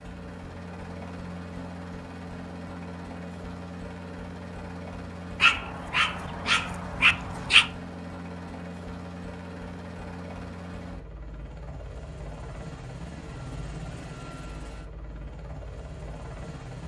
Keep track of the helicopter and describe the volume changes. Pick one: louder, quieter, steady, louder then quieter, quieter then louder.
steady.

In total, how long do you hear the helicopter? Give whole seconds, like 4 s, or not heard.
17 s.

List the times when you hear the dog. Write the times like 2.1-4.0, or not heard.
5.4-7.7.